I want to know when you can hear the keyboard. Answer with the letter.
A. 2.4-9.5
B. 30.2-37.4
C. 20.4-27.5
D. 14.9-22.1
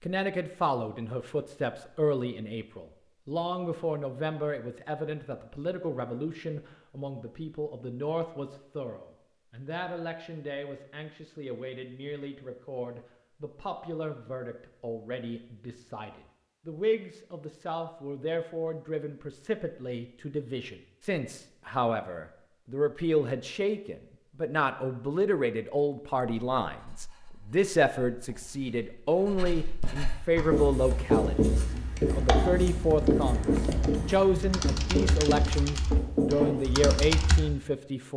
B.